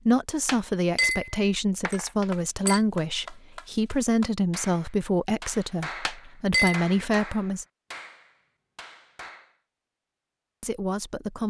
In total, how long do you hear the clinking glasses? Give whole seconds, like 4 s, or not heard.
3 s.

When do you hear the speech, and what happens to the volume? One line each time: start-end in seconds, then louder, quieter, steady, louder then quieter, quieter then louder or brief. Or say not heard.
0.1-7.7 steady
10.6-11.4 brief.